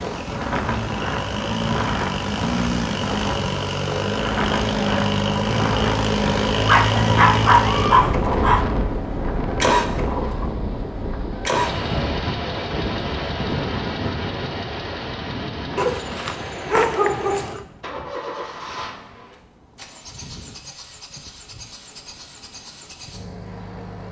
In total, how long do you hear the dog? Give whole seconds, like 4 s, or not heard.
4 s.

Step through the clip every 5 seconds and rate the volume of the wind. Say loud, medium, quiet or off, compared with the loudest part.
loud, loud, loud, quiet, quiet.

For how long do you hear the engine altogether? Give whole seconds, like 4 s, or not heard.
24 s.